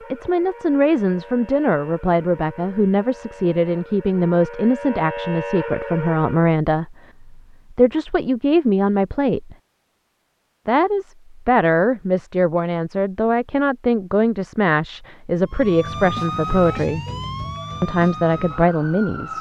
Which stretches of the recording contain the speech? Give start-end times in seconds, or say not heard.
0.1-9.6, 10.7-17.1, 17.8-19.3.